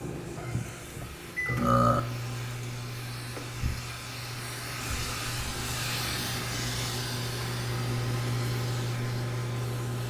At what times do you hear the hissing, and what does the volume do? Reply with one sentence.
You can hear the hissing from 0.0 to 10.0 s, getting louder then quieter.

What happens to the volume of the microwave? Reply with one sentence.
The volume of the microwave goes down, then up.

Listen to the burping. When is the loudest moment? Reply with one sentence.
The loudest moment of the burping is at 2 seconds.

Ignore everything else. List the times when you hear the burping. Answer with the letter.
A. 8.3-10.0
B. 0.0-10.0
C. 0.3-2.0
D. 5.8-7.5
C.